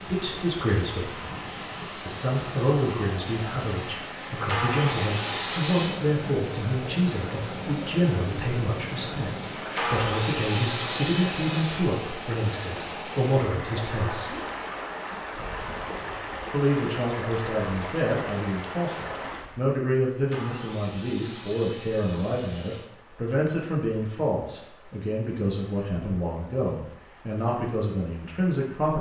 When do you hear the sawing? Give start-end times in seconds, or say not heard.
4.5-6.0, 9.7-11.8, 20.2-22.9.